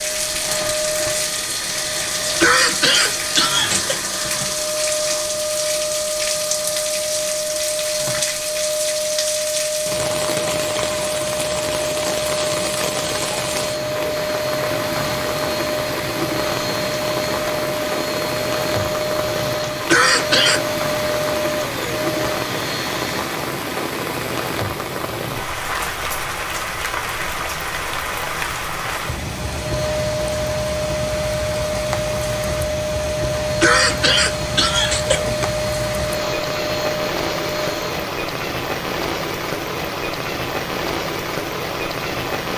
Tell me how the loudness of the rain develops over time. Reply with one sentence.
The volume of the rain stays about the same.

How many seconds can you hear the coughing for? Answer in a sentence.
You can hear the coughing for 4 seconds altogether.